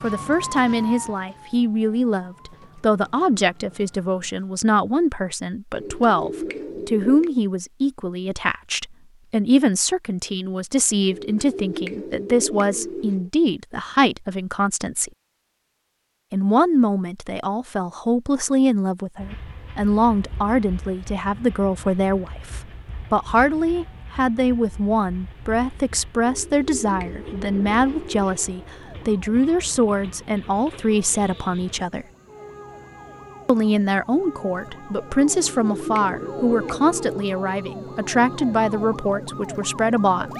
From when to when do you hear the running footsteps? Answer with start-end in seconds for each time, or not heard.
not heard.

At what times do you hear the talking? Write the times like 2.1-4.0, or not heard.
0.0-15.1, 16.3-32.0, 33.5-40.3.